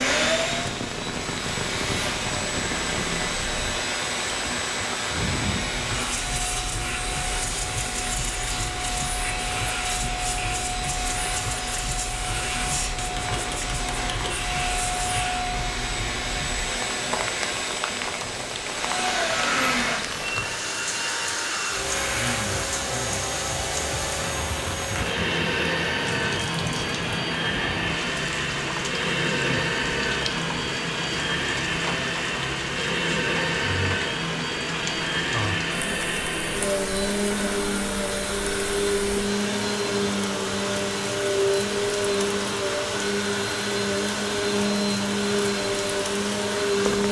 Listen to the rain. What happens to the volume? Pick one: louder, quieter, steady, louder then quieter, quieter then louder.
steady.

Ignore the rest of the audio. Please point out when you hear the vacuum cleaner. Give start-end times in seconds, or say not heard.
0.0-47.0.